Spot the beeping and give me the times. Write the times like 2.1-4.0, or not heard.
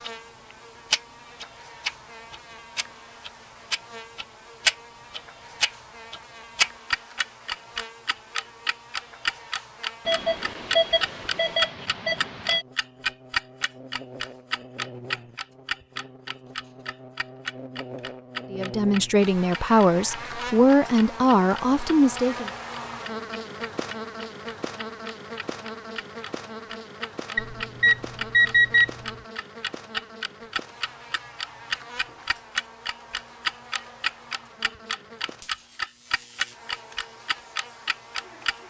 10.1-12.7, 27.4-29.1.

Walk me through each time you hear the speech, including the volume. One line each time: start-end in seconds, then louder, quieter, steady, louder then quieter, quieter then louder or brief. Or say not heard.
18.5-22.5 steady.